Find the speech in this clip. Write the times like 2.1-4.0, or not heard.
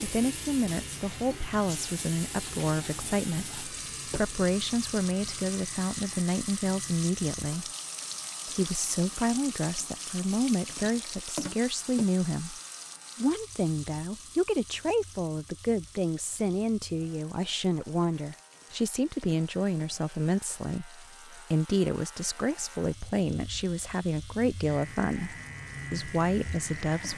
0.0-7.7, 8.4-12.6, 13.2-27.1.